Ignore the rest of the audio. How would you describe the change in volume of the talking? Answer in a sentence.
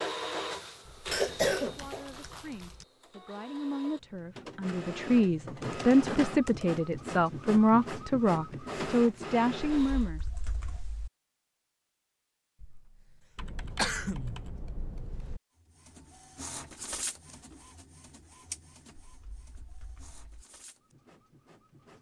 The volume of the talking goes up.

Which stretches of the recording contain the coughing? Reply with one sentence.
You can hear the coughing from 1.1 to 2.7 s and from 12.6 to 14.4 s.